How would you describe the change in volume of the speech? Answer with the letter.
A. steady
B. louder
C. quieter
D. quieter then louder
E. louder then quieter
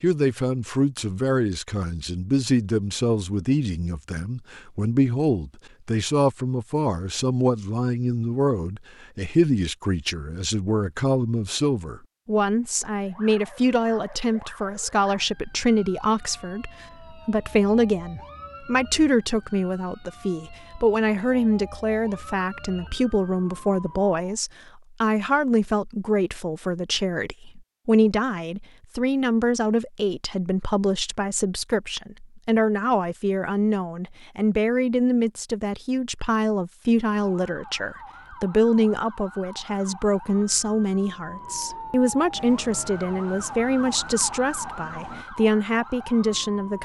A.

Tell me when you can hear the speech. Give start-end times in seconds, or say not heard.
0.0-46.8.